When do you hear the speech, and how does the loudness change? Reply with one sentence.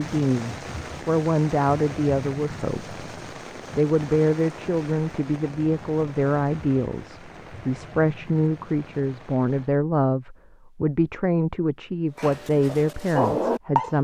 You can hear the speech briefly from 0.0 to 3.0 s; and from 3.8 to 13.9 s, at a steady volume.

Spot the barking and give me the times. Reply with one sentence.
You can hear the barking from 12.2 to 13.9 s.